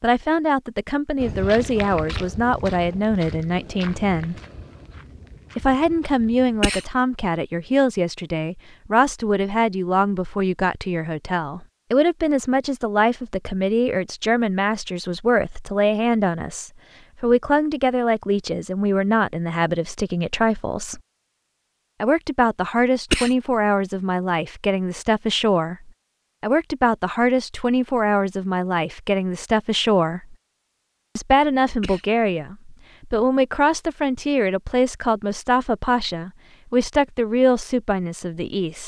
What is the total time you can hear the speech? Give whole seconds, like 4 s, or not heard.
36 s.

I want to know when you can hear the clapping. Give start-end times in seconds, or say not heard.
not heard.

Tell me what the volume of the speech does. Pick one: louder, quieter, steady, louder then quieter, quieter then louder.
steady.